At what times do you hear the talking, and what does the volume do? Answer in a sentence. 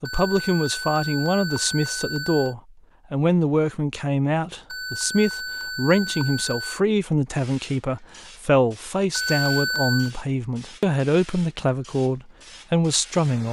You can hear the talking from 0.0 to 13.4 s, at a steady volume.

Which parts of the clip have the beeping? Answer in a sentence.
The beeping can be heard from 0.1 to 2.5 s, from 4.7 to 6.8 s and from 9.1 to 10.1 s.